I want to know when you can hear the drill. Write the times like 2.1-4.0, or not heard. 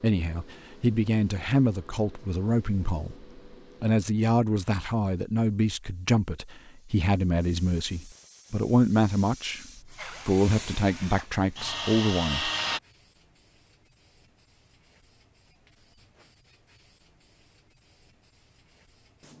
9.9-12.8.